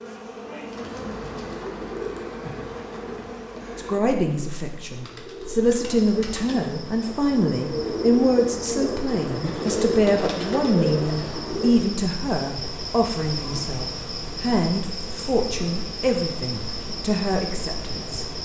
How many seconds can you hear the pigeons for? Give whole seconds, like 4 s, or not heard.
11 s.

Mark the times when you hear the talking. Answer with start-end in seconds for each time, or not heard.
3.8-18.2.